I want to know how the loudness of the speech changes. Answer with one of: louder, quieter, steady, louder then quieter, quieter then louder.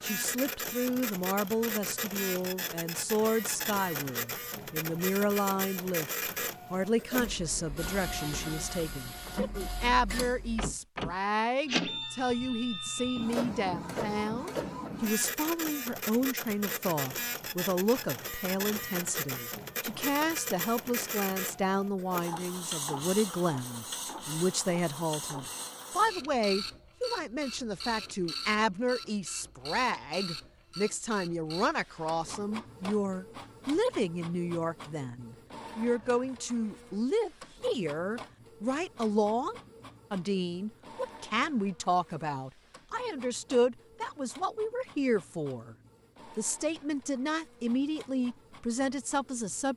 steady.